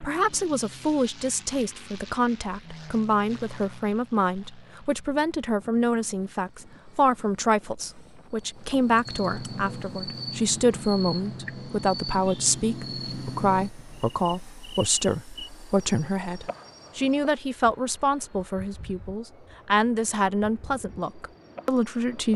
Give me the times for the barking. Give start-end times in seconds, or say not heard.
not heard.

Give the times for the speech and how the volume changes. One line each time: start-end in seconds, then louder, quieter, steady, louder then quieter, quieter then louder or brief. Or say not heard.
0.0-22.3 steady.